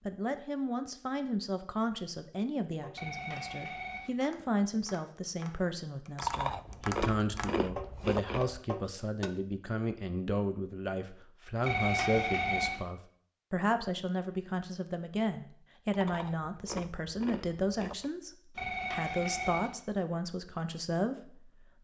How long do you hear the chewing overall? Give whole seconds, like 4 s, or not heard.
5 s.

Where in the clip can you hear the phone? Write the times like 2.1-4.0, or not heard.
3.0-4.1, 11.6-12.8, 18.6-19.7.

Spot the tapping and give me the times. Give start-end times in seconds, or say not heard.
2.8-9.3.